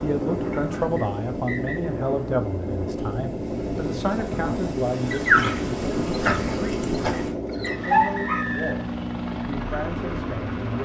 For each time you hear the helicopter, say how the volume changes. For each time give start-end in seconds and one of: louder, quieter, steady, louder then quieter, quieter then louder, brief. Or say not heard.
0.2-10.8 steady.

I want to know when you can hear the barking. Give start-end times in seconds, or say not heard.
5.1-8.4.